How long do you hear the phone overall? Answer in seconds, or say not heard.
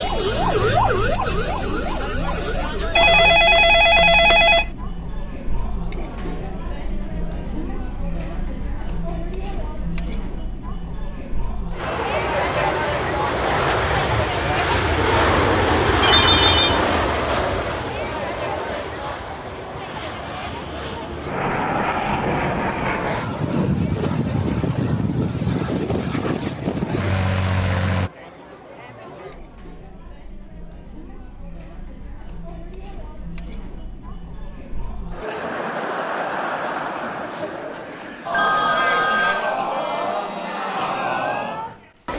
4 s.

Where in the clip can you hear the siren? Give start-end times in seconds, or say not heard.
0.0-3.4.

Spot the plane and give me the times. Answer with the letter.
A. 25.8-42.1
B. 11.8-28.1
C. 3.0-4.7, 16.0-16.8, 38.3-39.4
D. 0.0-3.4
B.